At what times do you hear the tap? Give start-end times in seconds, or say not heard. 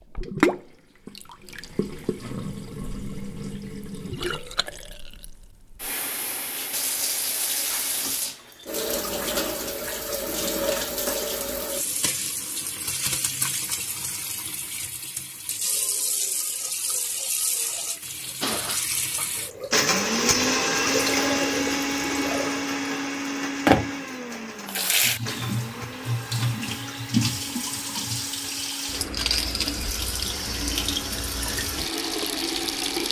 0.0-33.0.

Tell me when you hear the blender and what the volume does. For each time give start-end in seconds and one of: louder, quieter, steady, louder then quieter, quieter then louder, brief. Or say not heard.
18.4-33.0 quieter.